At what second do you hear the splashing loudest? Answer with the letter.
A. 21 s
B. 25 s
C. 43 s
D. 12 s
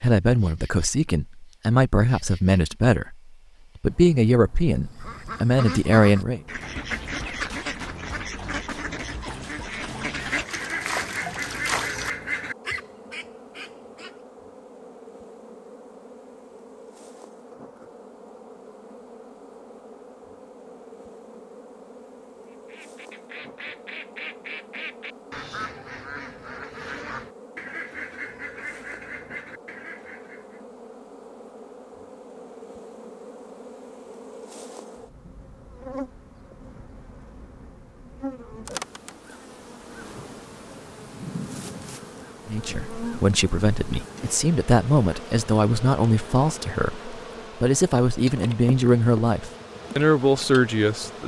D.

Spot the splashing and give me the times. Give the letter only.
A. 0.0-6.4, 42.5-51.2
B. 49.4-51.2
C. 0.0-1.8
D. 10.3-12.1
D.